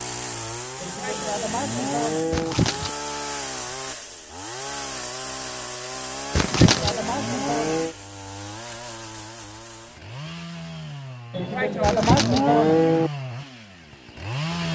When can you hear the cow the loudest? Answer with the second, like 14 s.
13 s.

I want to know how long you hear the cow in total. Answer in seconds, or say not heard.
5 s.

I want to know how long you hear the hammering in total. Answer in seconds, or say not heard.
not heard.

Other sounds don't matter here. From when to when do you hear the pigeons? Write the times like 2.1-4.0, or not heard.
2.3-2.9, 6.3-7.0, 11.8-12.4.